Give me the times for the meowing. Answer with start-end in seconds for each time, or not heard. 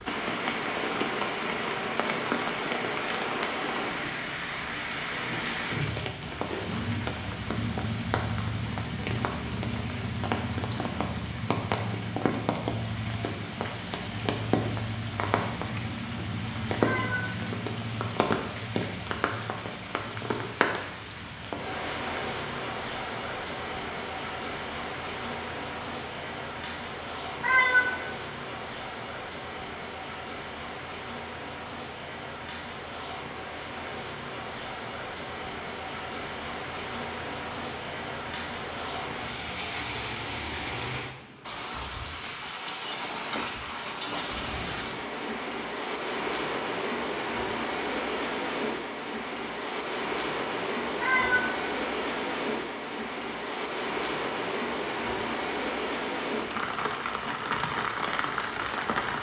16.8-17.4, 27.4-27.9, 51.0-51.5.